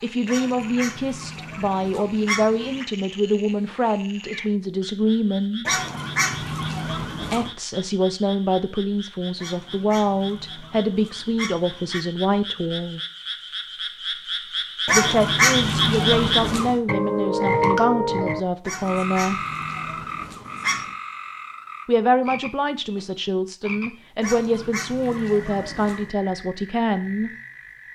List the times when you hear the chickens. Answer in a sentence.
You can hear the chickens from 0.2 to 2.9 s, from 5.7 to 7.5 s, from 9.3 to 12.1 s, from 14.8 to 16.8 s, from 18.6 to 20.9 s and from 24.2 to 26.1 s.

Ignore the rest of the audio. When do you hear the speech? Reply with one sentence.
The speech can be heard from 0.0 to 5.8 s, from 7.3 to 13.0 s, from 14.9 to 19.4 s and from 21.9 to 27.3 s.